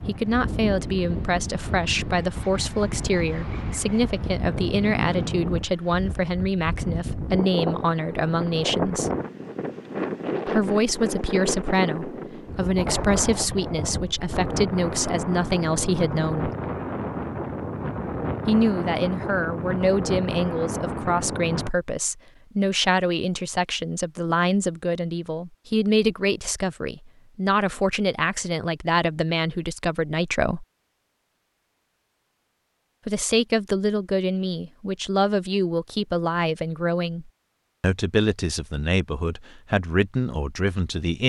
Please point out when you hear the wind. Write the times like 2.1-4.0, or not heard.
0.0-21.7.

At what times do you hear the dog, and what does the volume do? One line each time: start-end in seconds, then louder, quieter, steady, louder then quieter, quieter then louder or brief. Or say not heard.
not heard.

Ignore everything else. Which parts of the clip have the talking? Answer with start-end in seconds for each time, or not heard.
0.1-9.1, 10.4-16.5, 18.4-30.6, 33.0-41.2.